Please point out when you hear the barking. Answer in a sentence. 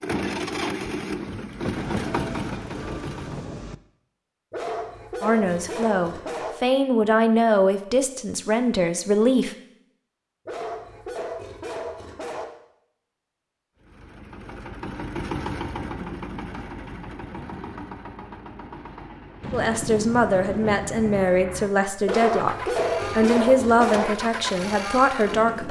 The barking can be heard from 4.5 to 6.5 s, from 10.4 to 12.4 s and from 22.1 to 24.1 s.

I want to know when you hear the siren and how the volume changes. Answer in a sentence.
You can't hear the siren here.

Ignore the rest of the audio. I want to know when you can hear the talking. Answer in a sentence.
The talking can be heard from 5.2 to 9.6 s and from 19.5 to 25.6 s.